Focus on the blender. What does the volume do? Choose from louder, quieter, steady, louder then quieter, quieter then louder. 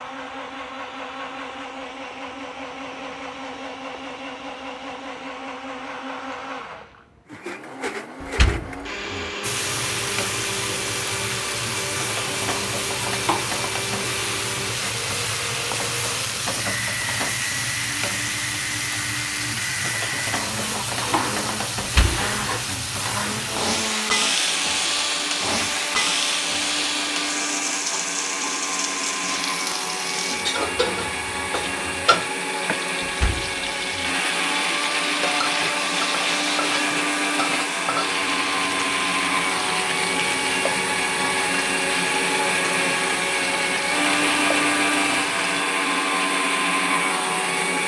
louder.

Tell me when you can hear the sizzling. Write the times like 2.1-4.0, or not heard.
9.4-45.6.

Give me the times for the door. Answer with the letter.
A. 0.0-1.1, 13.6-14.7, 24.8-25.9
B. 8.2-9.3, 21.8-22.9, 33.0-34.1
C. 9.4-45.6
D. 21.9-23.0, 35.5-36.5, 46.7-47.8
B.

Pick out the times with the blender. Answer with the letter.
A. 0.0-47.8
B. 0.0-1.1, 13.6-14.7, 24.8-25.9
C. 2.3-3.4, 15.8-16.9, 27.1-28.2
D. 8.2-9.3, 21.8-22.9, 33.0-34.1
A.